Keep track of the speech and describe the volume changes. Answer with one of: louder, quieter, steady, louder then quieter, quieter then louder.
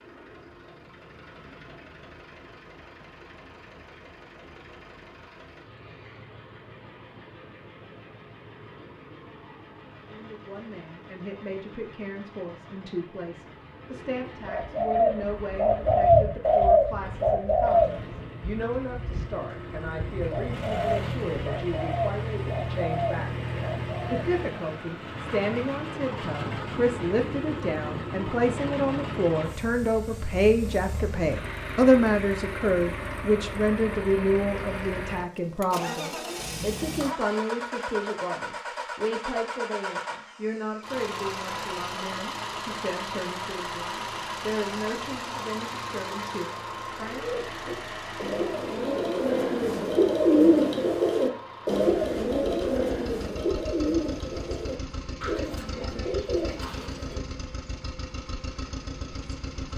louder then quieter.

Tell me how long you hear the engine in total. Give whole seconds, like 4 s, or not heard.
60 s.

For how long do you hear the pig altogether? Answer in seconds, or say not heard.
not heard.